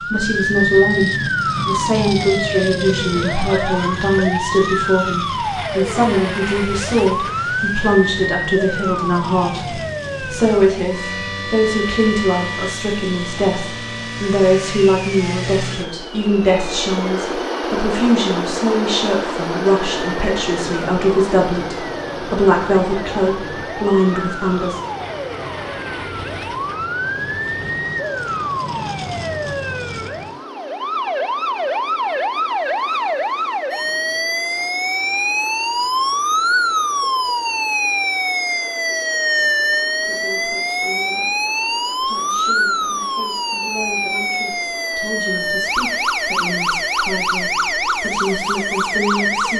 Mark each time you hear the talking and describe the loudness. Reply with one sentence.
The talking can be heard from 0.1 to 24.8 s, at a steady volume; and from 39.3 to 49.5 s, getting louder.